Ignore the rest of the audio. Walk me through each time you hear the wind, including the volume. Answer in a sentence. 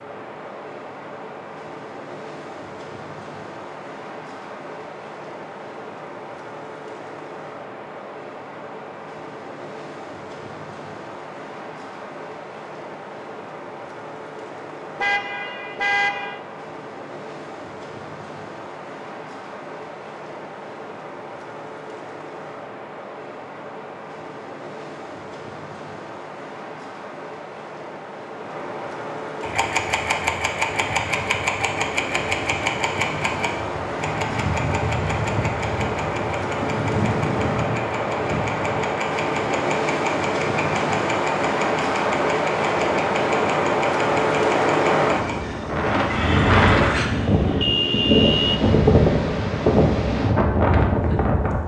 You can hear the wind from 0.0 to 51.6 s, getting louder.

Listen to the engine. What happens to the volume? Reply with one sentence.
The loudness of the engine goes down.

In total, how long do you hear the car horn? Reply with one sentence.
The car horn can be heard for 3 seconds in total.